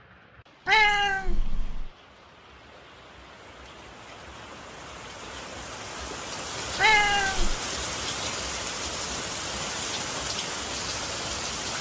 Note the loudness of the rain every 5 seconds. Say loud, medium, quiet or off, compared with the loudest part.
quiet, loud, loud.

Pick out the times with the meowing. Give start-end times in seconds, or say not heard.
0.7-1.9, 6.8-7.6.